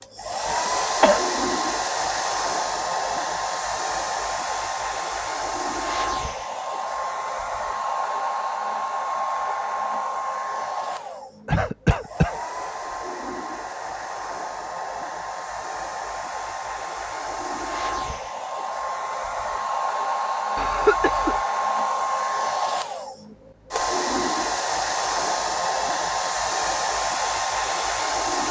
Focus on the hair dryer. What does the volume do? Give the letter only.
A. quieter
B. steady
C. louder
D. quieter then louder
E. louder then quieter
D.